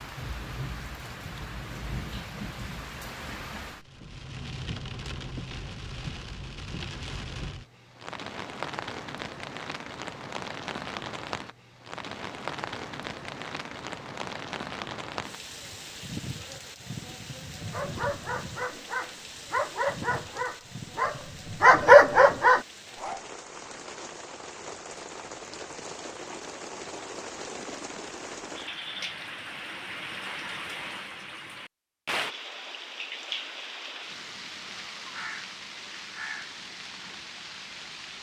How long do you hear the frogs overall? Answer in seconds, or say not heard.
not heard.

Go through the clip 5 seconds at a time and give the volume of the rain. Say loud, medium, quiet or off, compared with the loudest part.
loud, loud, loud, loud, medium, loud, loud, loud.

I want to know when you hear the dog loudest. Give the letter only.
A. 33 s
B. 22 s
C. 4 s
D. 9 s
B.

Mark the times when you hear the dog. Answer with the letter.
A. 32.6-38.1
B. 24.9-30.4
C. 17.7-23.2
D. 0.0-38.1
C.